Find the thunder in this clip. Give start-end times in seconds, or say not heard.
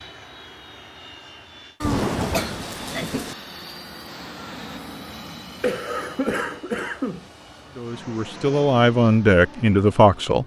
1.8-3.4.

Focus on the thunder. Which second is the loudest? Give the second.
2 s.